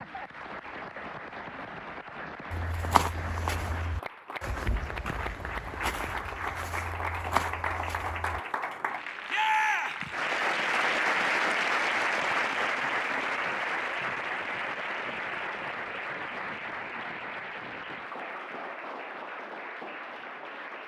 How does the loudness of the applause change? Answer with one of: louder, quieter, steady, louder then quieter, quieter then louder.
louder then quieter.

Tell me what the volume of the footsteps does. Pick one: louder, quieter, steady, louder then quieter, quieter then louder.
quieter then louder.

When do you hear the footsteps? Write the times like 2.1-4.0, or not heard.
2.5-8.4.